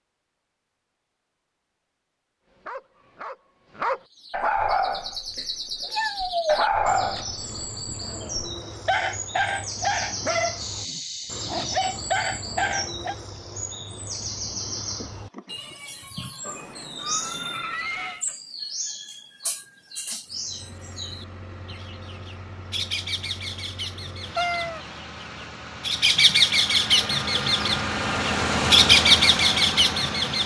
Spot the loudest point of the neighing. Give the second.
18 s.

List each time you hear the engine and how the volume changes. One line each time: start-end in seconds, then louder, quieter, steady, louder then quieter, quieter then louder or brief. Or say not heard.
20.2-30.4 louder.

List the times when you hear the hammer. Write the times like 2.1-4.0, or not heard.
not heard.